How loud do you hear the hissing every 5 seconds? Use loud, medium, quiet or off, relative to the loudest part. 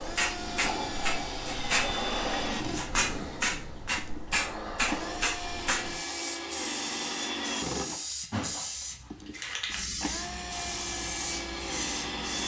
loud, loud, medium.